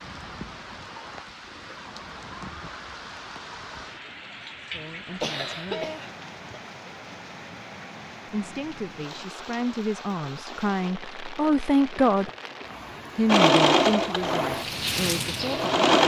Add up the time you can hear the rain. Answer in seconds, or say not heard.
16 s.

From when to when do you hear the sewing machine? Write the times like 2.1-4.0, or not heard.
13.2-16.0.